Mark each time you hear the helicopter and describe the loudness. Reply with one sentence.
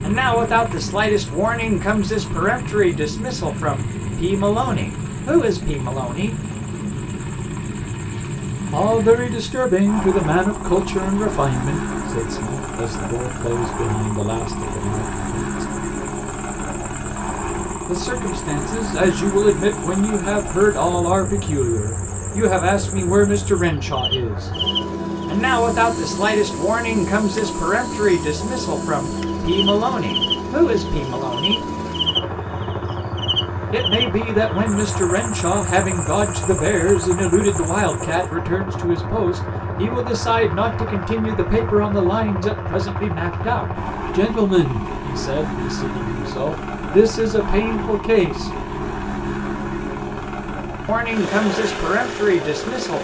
You can hear the helicopter from 0.0 to 53.0 s, at a steady volume.